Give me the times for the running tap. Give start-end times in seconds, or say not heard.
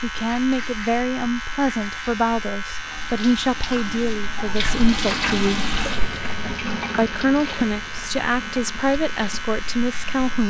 0.0-10.4.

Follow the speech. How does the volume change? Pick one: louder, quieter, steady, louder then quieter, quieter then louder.
steady.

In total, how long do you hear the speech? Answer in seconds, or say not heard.
9 s.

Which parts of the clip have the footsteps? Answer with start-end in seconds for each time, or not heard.
not heard.